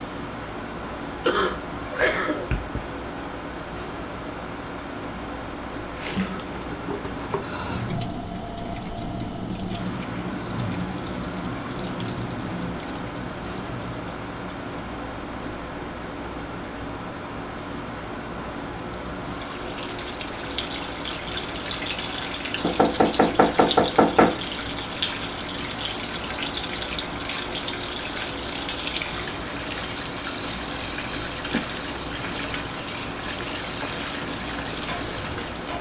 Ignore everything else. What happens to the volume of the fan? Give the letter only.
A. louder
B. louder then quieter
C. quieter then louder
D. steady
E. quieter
D.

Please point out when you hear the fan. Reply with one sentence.
The fan can be heard from 0.0 to 35.7 s.